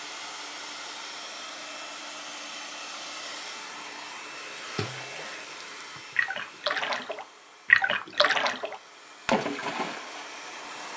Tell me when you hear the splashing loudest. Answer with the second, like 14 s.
8 s.